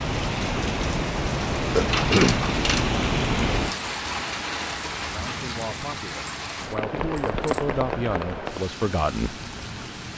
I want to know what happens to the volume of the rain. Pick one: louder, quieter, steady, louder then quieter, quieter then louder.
quieter.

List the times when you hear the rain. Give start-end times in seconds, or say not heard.
0.0-10.1.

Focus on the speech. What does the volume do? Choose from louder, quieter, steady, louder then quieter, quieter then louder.
louder.